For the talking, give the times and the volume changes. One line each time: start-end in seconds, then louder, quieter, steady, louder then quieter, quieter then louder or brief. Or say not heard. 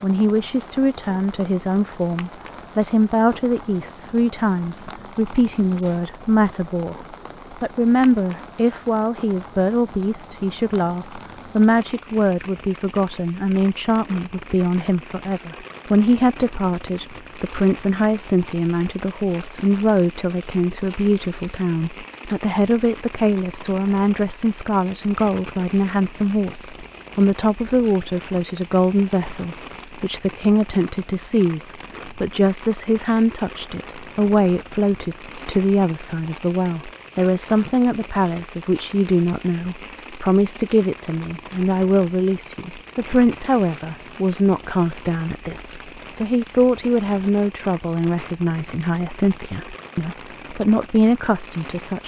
0.0-52.0 steady.